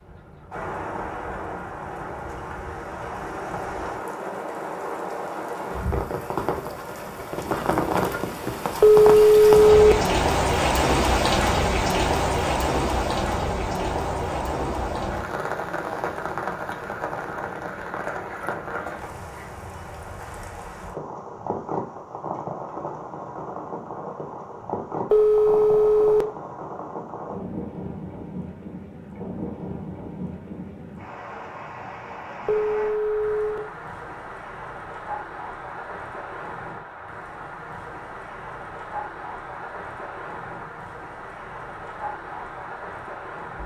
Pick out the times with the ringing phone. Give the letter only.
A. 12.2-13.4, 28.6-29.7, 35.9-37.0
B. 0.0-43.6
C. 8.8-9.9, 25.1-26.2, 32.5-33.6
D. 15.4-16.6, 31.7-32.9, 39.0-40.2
C.